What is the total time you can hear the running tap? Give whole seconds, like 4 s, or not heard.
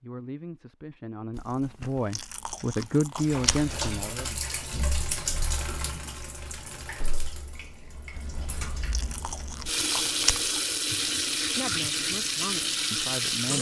10 s.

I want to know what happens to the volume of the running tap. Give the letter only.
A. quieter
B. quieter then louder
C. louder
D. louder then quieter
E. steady
B.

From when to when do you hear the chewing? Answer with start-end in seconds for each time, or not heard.
1.3-3.7, 8.1-10.7.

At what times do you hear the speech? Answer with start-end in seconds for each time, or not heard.
0.0-4.4, 11.4-13.5.